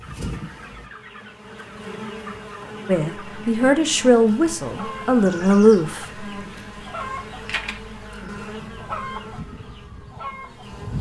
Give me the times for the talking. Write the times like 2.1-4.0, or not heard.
2.9-6.2.